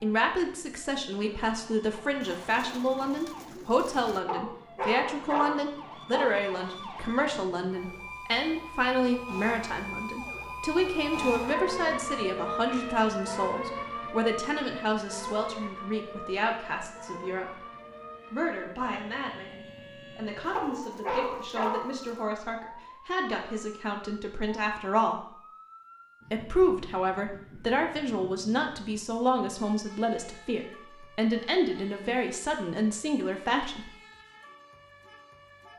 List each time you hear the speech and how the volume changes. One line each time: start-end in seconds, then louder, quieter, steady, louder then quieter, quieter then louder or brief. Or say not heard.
0.0-17.6 steady
18.3-25.4 steady
26.3-33.9 steady.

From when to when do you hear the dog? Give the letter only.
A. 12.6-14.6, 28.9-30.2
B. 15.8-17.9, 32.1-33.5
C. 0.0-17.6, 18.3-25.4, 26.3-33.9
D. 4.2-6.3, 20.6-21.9
D.